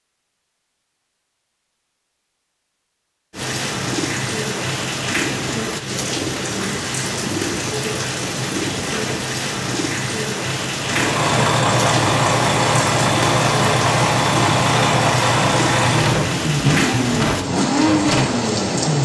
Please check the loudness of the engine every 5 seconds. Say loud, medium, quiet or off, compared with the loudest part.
off, off, loud, loud.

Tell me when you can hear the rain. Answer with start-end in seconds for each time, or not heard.
3.3-19.0.